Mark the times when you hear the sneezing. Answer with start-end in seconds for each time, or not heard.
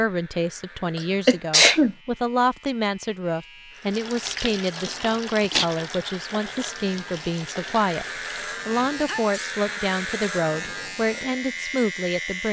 0.9-1.9, 4.8-5.7, 8.9-9.5.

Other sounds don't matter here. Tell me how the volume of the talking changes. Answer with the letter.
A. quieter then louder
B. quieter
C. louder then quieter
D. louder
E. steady
E.